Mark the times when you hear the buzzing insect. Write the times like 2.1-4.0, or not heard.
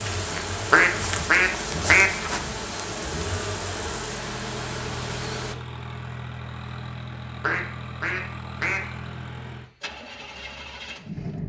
0.0-5.5.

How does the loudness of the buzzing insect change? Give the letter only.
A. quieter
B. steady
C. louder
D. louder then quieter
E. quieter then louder
B.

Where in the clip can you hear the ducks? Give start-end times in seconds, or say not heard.
0.7-2.5, 7.4-8.8.